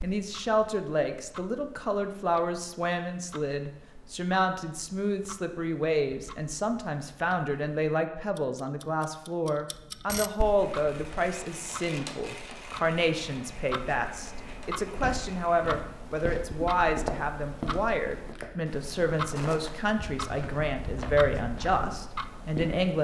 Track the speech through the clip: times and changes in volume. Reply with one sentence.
You can hear the speech from 0.0 to 22.9 s, at a steady volume.